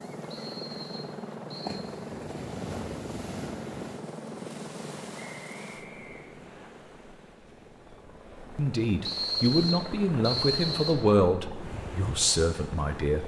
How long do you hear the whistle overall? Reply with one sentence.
The whistle can be heard for 5 seconds in total.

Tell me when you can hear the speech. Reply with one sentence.
The speech can be heard from 8.6 to 13.2 s.